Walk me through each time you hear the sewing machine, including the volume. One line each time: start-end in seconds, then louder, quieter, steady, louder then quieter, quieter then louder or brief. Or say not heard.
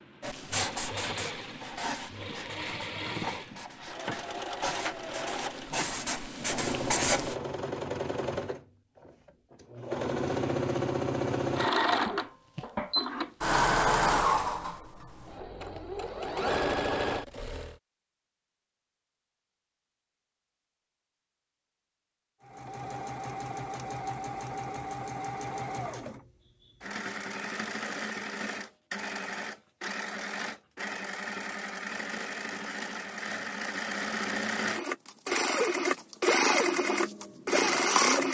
0.0-17.8 louder
22.4-38.2 louder.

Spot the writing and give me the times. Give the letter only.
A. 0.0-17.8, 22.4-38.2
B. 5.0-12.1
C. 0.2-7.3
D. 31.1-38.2
C.